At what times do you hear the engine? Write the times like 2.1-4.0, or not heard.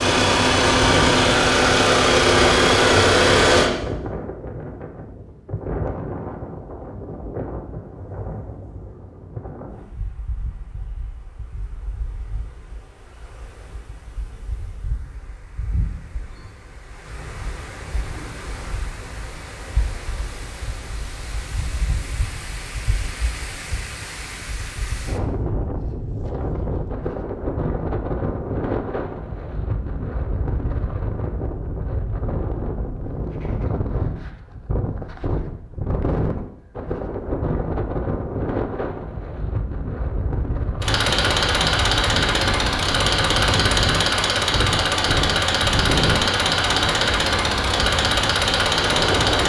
0.0-3.7, 40.8-49.4.